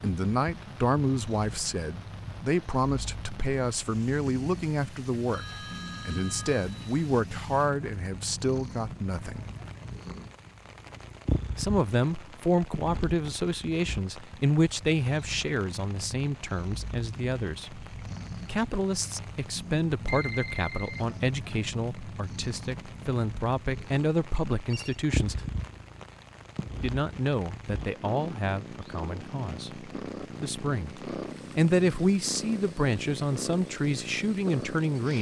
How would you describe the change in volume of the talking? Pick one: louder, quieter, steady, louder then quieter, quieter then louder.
steady.